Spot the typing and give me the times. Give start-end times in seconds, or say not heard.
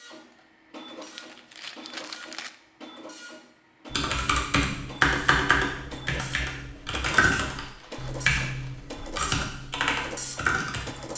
3.9-11.1.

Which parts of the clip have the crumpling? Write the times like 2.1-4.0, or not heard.
0.8-2.5, 7.7-8.8.